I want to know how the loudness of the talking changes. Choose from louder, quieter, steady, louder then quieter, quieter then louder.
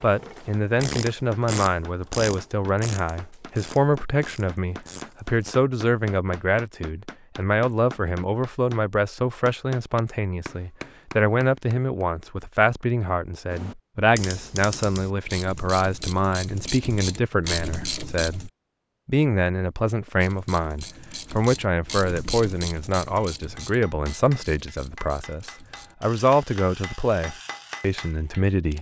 steady.